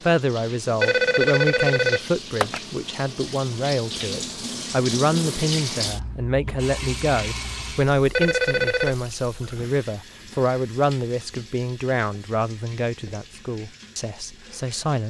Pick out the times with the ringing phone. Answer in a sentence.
The ringing phone can be heard from 0.8 to 2.6 s and from 8.2 to 8.9 s.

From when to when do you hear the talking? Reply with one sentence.
The talking can be heard from 0.0 to 15.0 s.